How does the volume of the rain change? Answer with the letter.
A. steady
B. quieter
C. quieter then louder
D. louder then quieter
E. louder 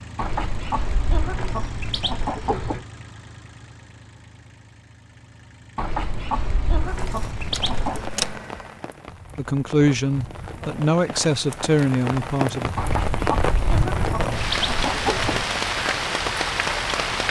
E.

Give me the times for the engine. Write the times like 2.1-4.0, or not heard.
0.0-8.8.